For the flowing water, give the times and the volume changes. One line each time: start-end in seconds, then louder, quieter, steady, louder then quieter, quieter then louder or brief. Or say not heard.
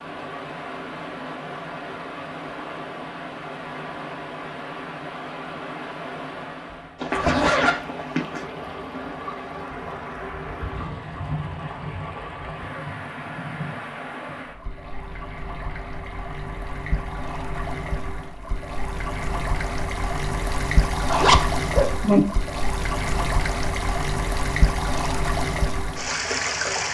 0.0-26.8 louder.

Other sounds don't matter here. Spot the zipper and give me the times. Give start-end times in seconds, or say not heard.
7.0-8.4, 21.1-22.2.